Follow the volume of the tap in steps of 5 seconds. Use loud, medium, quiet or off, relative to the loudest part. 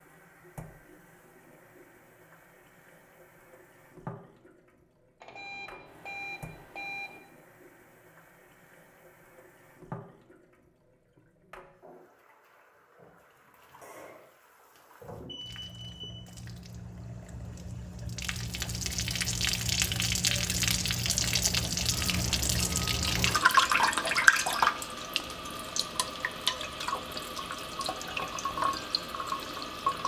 quiet, quiet, quiet, medium, loud, medium.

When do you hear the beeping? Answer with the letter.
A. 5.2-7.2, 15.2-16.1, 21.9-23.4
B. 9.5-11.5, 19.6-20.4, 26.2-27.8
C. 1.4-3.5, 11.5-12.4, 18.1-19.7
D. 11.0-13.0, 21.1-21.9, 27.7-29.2
A.